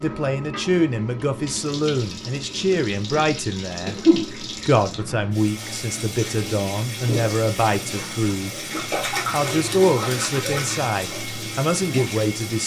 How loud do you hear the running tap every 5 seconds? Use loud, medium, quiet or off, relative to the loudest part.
medium, loud, loud.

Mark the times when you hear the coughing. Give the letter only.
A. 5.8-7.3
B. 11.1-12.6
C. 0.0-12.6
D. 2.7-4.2
D.